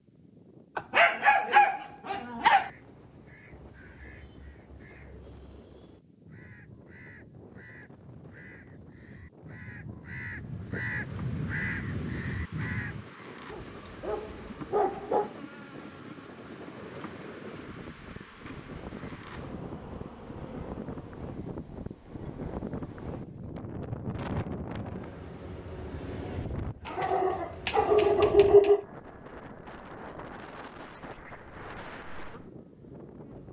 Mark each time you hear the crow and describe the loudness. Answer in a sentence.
You can hear the crow from 2.5 to 13.1 s, getting louder.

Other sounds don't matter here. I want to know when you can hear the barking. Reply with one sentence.
The barking can be heard from 0.8 to 2.7 s, from 13.5 to 15.3 s and from 26.9 to 28.9 s.